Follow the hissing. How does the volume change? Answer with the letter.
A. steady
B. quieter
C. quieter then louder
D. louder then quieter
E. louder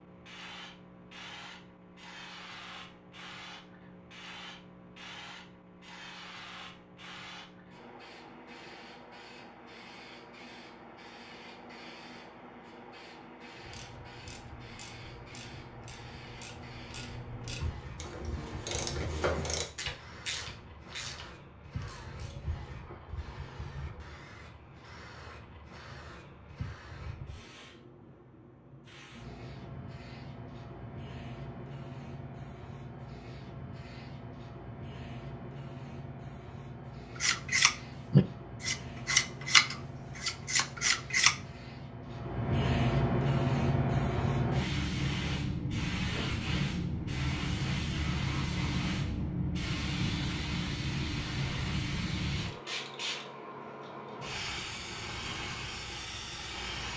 E.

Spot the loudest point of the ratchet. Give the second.
19 s.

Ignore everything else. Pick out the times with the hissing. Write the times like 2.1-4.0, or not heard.
0.0-56.9.